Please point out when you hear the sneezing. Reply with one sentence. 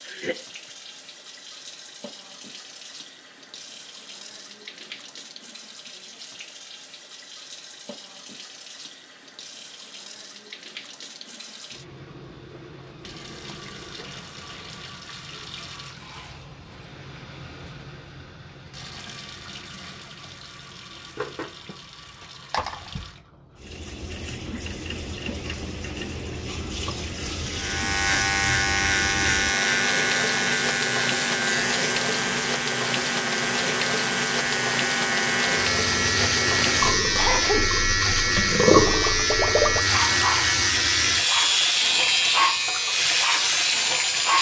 You can hear the sneezing from 0.1 to 0.7 s and from 37.1 to 37.7 s.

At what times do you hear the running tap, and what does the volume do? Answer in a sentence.
The running tap can be heard from 0.0 to 44.3 s, getting louder.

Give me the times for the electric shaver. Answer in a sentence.
You can hear the electric shaver from 27.5 to 44.3 s.